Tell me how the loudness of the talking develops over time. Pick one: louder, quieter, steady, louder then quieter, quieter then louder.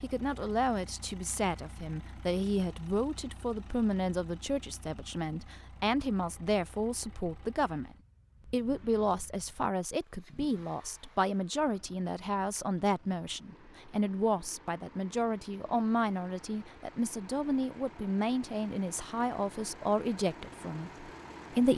steady.